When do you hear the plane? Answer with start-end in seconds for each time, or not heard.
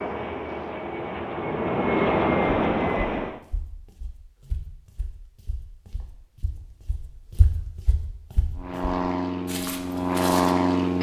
0.0-3.4, 8.6-10.9.